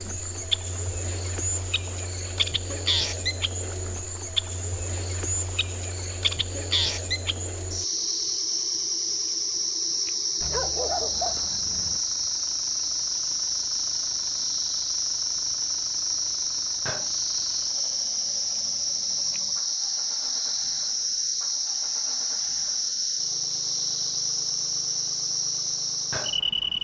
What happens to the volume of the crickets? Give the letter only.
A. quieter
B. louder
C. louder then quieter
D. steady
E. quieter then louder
D.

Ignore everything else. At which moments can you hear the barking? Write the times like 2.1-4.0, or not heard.
10.4-12.0.